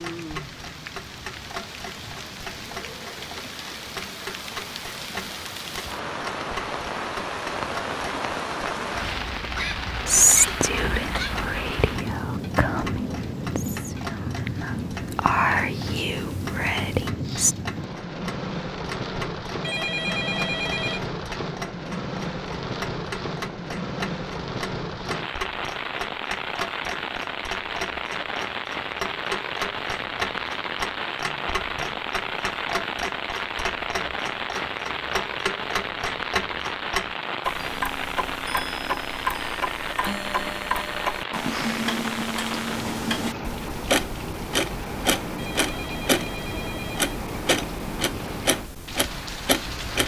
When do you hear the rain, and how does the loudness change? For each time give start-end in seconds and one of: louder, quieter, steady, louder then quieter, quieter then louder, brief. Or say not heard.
0.0-50.0 steady.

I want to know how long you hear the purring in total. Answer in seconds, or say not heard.
not heard.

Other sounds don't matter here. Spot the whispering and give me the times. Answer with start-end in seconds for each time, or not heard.
10.1-17.6.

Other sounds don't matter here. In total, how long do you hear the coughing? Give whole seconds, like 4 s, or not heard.
2 s.